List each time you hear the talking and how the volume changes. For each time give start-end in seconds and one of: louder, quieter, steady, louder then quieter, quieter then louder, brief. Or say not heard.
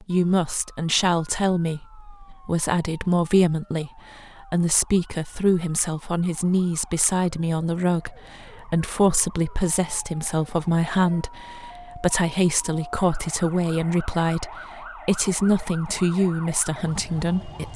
0.0-17.7 steady.